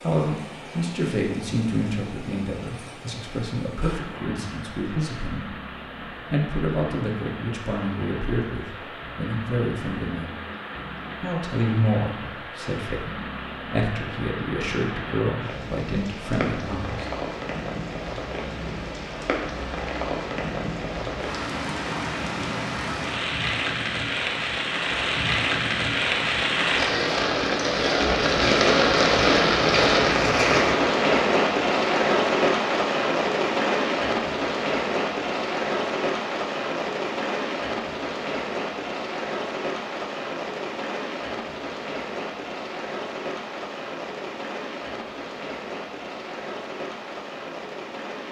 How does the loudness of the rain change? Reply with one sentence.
The volume of the rain goes up, then down.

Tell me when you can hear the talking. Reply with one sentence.
You can hear the talking from 0.0 to 10.3 s and from 11.2 to 17.1 s.